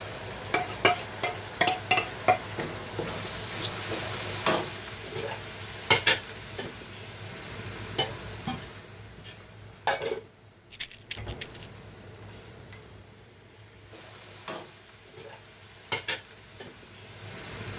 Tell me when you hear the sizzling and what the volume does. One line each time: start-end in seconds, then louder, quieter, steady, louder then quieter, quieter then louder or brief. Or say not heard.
0.0-17.7 quieter then louder.